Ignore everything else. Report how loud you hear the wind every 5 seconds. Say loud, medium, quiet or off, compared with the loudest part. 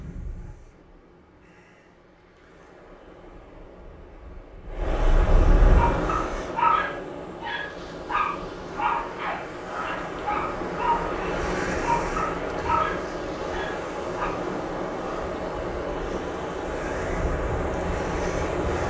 quiet, loud, loud, loud.